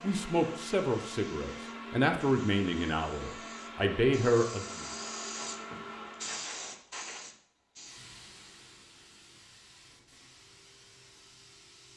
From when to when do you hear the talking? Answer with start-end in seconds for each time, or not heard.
0.0-4.8.